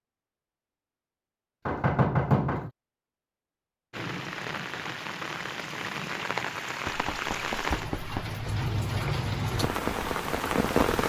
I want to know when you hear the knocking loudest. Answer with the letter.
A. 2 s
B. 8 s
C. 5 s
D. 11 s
A.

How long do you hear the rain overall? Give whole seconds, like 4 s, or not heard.
7 s.